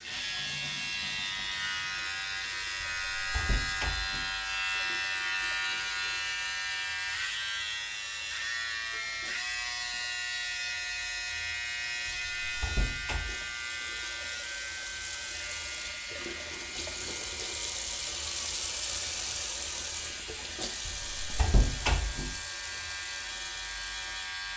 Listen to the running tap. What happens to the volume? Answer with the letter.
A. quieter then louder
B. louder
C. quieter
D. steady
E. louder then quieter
B.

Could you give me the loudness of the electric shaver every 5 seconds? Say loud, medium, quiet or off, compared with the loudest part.
loud, loud, loud, medium, medium.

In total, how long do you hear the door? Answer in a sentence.
The door can be heard for 4 seconds in total.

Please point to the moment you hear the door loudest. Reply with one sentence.
The loudest moment of the door is at 22 seconds.